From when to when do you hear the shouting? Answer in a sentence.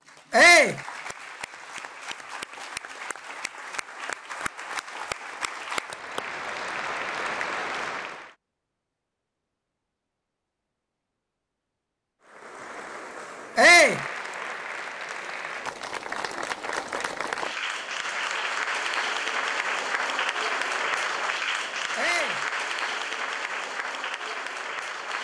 The shouting can be heard from 0.3 to 0.8 s, from 13.6 to 14.0 s and from 21.9 to 22.4 s.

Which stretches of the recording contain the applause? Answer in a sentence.
The applause can be heard from 0.0 to 8.3 s and from 12.2 to 25.1 s.